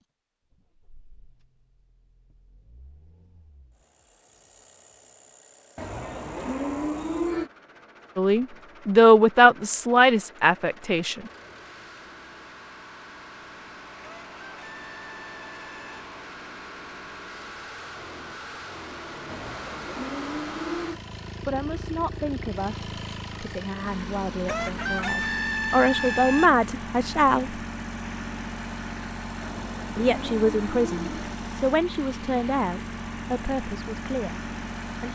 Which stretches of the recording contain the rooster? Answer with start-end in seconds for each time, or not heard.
14.0-16.1, 24.4-26.5.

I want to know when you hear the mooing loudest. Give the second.
7 s.